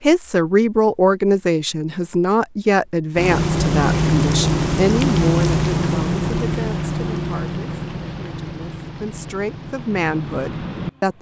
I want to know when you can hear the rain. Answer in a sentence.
The rain can be heard from 3.1 to 11.1 s.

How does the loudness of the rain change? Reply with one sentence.
The volume of the rain goes down.